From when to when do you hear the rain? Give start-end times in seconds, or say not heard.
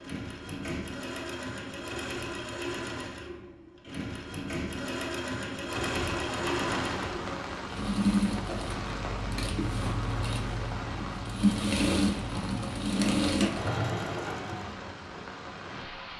5.7-16.1.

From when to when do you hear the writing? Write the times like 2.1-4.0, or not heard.
not heard.